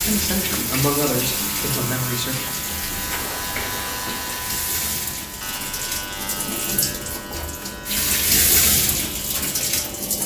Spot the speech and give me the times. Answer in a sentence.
The speech can be heard from 0.0 to 2.4 s.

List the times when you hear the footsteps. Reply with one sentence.
You can't hear the footsteps here.